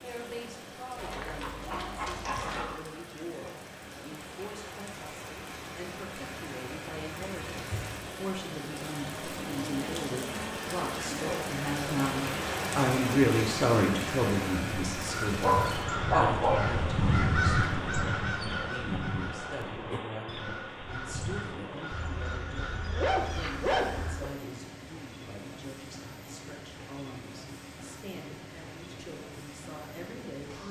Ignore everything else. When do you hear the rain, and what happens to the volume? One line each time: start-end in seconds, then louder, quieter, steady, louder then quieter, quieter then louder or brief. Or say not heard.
0.0-30.6 louder then quieter.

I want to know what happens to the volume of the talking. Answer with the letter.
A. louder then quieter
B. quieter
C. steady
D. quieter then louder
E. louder
A.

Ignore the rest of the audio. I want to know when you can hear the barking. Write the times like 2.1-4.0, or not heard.
0.9-2.8, 15.4-16.7, 21.9-24.3.